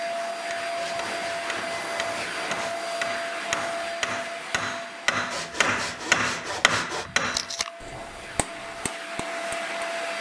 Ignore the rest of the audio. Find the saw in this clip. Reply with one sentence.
The saw can be heard from 0.8 to 2.9 s and from 5.3 to 7.1 s.